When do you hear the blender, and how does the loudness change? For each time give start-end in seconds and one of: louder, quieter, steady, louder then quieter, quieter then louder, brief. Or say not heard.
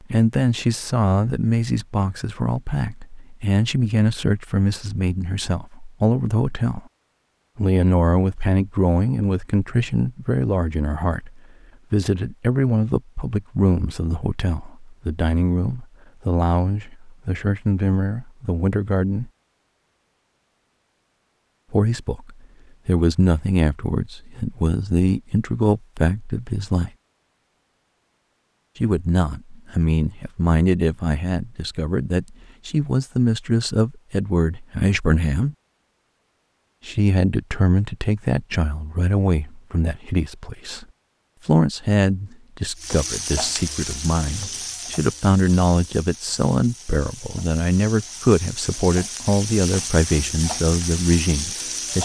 not heard.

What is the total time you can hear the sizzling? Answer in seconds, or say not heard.
9 s.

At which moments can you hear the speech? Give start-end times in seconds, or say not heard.
0.0-6.8, 7.5-19.3, 21.7-26.9, 28.8-35.5, 36.9-40.9, 41.5-51.9.